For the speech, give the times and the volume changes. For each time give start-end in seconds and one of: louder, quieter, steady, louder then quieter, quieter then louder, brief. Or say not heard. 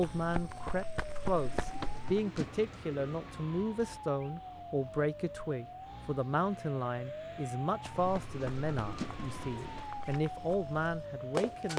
0.0-11.7 steady.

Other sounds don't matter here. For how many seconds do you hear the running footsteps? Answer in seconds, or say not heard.
6 s.